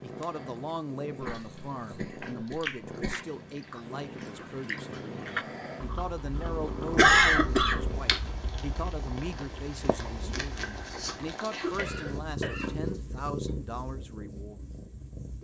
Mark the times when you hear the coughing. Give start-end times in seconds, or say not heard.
1.1-3.2, 7.0-8.2, 11.6-13.5.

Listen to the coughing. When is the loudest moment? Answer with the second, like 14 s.
7 s.